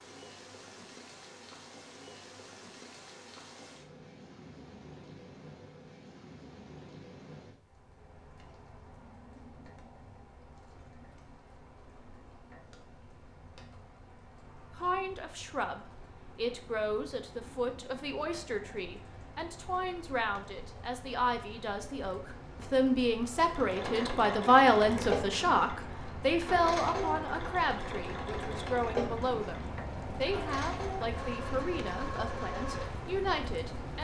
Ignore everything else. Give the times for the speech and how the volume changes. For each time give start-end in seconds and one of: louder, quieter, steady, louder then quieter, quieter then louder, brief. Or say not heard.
14.8-33.9 louder then quieter.